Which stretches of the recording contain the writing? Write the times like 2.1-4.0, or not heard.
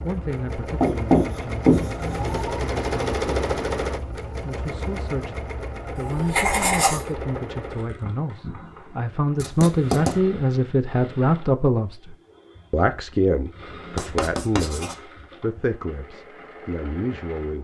0.8-2.5, 6.0-7.0, 9.3-10.2, 13.9-14.9.